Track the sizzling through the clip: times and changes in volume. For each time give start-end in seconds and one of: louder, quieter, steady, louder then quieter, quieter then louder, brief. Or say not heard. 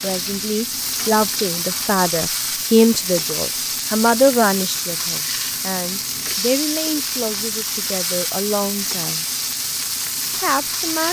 0.0-11.0 steady.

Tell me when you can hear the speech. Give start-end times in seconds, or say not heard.
0.0-9.2, 10.3-11.0.